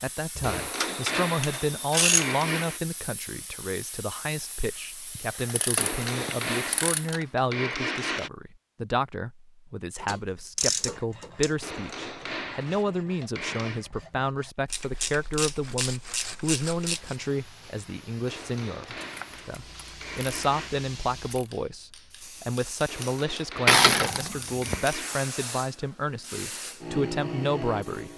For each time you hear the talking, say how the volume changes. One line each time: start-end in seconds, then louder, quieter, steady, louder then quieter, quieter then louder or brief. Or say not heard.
0.0-28.1 steady.